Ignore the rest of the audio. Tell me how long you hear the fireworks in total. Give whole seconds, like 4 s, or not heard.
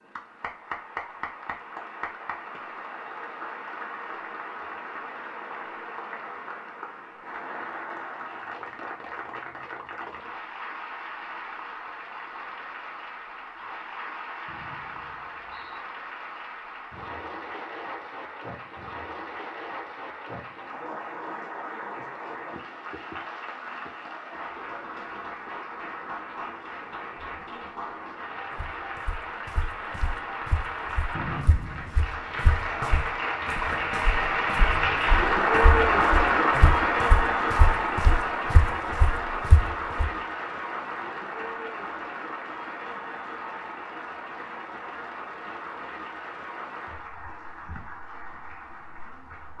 not heard.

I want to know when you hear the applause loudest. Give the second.
36 s.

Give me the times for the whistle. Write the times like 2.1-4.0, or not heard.
14.4-15.8, 31.1-32.0.